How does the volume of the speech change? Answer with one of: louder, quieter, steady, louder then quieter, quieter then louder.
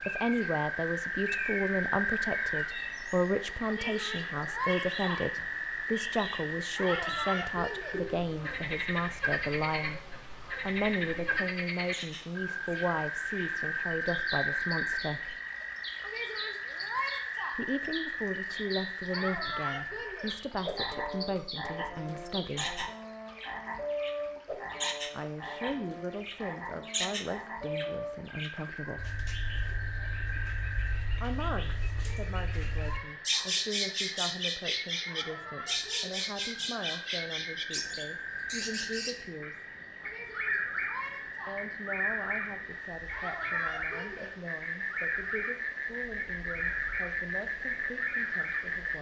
quieter.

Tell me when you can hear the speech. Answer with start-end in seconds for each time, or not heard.
0.1-15.3, 17.5-22.9, 25.1-29.1, 31.2-39.6, 41.5-48.9.